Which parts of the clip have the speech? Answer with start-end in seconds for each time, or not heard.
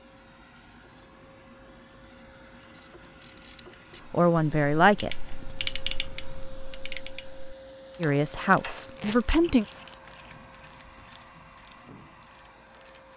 4.1-5.5, 8.0-9.7.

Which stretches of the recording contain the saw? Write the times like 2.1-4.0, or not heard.
not heard.